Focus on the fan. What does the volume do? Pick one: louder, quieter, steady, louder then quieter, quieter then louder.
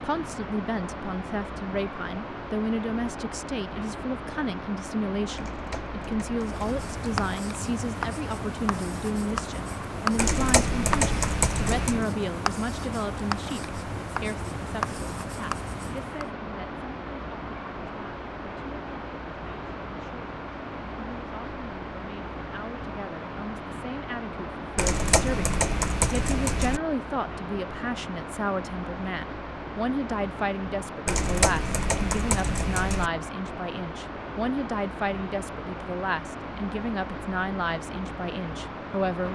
steady.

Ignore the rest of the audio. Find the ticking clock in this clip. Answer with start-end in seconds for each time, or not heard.
not heard.